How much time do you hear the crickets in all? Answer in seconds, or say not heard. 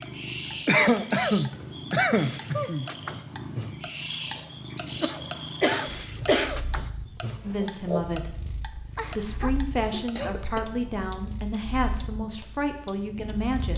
10 s.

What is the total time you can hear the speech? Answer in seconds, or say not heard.
6 s.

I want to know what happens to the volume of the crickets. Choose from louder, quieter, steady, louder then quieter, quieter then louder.
steady.